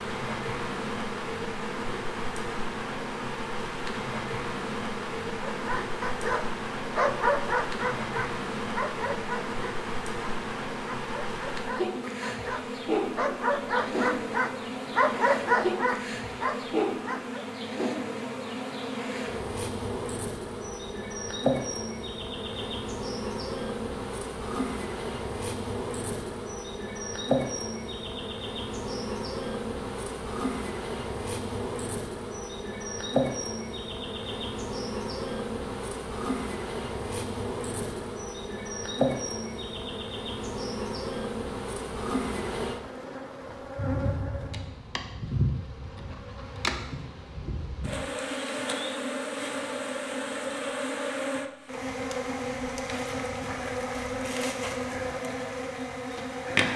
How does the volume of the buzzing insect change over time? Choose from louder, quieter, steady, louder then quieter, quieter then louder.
steady.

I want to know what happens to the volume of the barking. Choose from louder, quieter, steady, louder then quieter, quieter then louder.
quieter then louder.